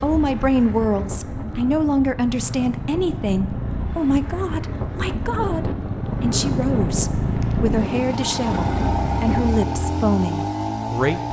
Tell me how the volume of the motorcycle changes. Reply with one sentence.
The loudness of the motorcycle goes up.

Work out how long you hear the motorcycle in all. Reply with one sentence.
You can hear the motorcycle for 11 seconds altogether.